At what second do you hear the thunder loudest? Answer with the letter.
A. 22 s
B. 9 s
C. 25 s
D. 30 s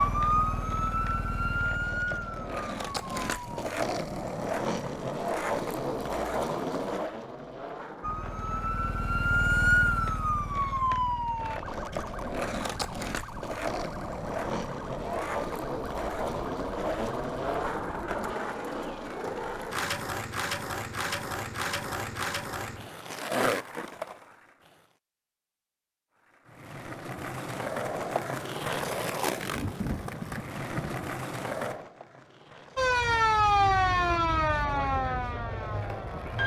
D.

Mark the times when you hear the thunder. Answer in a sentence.
You can hear the thunder from 29.5 to 31.1 s.